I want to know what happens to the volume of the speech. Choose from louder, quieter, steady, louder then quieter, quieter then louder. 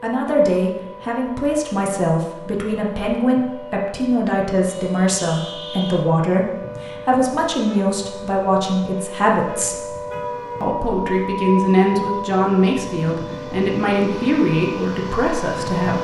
steady.